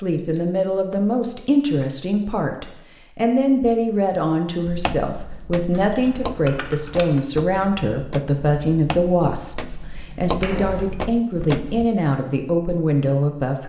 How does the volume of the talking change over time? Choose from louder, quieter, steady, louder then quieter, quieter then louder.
steady.